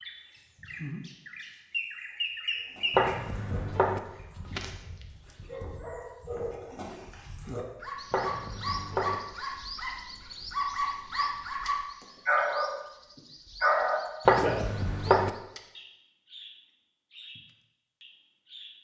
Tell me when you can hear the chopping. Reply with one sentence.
The chopping can be heard from 2.9 to 4.0 s, from 8.1 to 9.2 s and from 14.2 to 15.3 s.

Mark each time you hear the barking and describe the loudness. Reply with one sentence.
You can hear the barking from 2.5 to 14.6 s, getting louder.